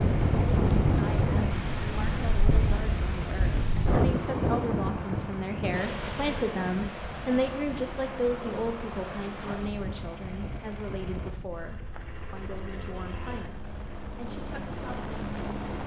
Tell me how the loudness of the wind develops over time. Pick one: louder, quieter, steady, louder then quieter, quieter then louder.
quieter.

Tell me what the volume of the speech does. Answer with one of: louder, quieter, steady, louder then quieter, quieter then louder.
louder then quieter.